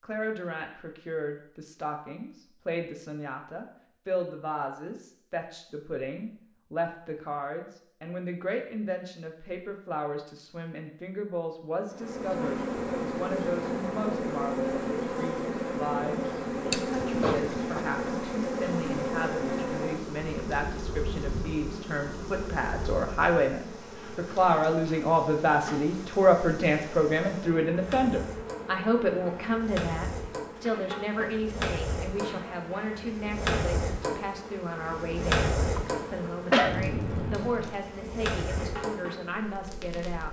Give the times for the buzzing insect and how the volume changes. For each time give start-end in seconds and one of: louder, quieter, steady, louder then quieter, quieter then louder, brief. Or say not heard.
11.9-40.2 quieter.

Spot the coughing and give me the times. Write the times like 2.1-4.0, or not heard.
16.7-17.8, 35.6-36.8.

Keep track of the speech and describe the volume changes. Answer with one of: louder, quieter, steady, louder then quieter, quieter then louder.
louder then quieter.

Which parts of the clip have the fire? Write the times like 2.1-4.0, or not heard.
16.9-40.2.